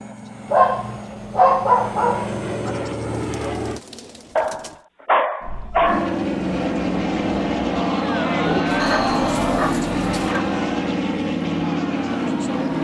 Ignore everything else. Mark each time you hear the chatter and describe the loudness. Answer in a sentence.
The chatter can be heard from 5.4 to 12.7 s, getting louder then quieter.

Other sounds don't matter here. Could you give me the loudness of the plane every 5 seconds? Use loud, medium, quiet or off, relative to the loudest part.
medium, loud, loud.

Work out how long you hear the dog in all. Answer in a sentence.
The dog can be heard for 6 seconds in total.